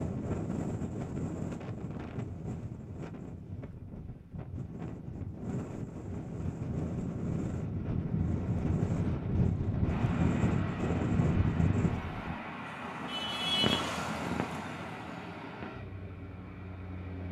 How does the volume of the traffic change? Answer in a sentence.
The volume of the traffic goes up, then down.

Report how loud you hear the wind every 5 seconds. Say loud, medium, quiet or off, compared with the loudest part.
medium, loud, loud, off.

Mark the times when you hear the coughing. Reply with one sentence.
You can't hear the coughing here.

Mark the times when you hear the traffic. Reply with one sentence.
The traffic can be heard from 8.0 to 17.2 s.